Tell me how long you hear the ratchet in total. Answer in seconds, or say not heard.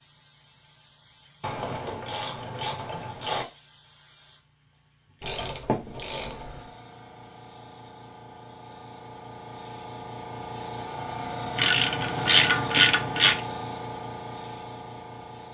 5 s.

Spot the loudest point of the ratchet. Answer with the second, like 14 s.
12 s.